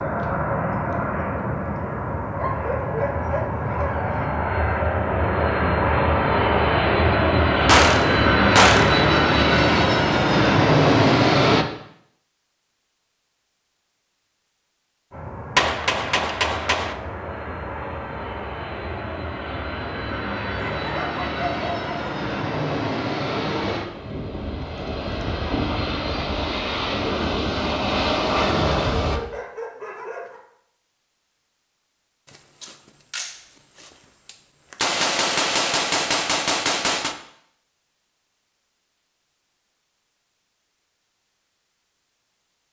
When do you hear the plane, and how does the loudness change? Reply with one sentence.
The plane can be heard from 0.0 to 11.7 s, getting louder; and from 15.1 to 29.2 s, getting louder.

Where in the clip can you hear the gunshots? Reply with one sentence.
The gunshots can be heard from 7.7 to 9.0 s, from 15.6 to 16.9 s and from 32.4 to 37.1 s.